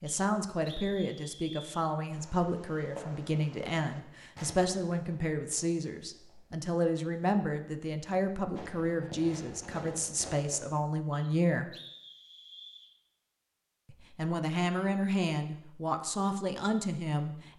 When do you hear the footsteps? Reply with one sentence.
The footsteps can't be heard in this clip.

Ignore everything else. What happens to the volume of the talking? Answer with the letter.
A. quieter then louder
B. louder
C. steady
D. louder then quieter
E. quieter
C.